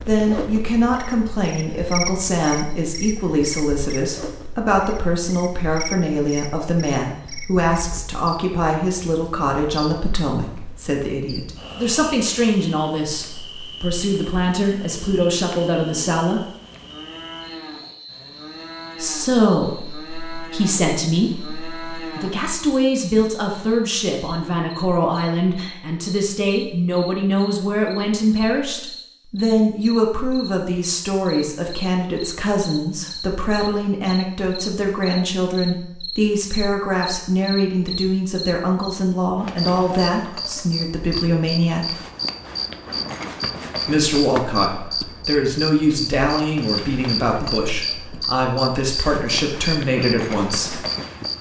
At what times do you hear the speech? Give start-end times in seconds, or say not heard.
0.1-16.4, 19.0-42.0, 43.9-50.8.